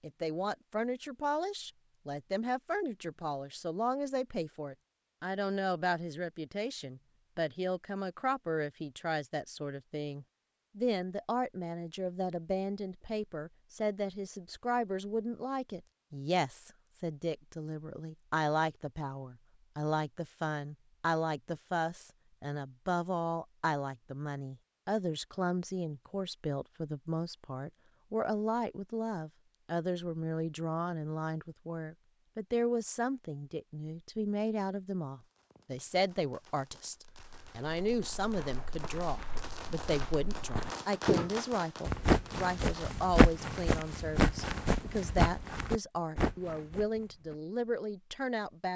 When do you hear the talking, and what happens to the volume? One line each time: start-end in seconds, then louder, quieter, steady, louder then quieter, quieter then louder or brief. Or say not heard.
0.0-48.7 steady.